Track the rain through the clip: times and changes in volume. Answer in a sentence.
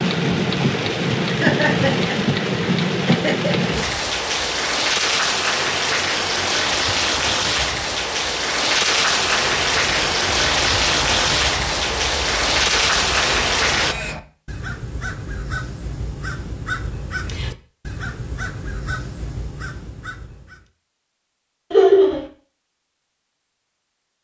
The rain can be heard from 0.0 to 13.9 s, at a steady volume.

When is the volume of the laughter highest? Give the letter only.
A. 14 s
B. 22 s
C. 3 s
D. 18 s
B.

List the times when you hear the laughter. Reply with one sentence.
The laughter can be heard from 1.2 to 3.5 s and from 21.7 to 22.2 s.